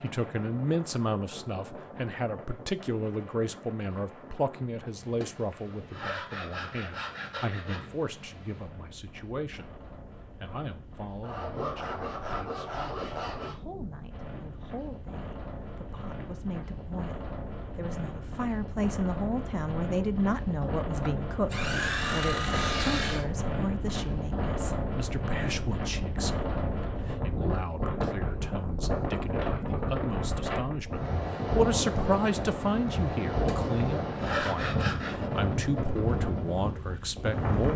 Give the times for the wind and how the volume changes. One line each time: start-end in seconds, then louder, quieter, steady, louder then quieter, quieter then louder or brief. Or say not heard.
0.0-37.7 louder.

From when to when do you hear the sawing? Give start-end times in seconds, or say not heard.
5.2-7.9, 11.2-13.6, 20.6-23.2, 33.5-35.3.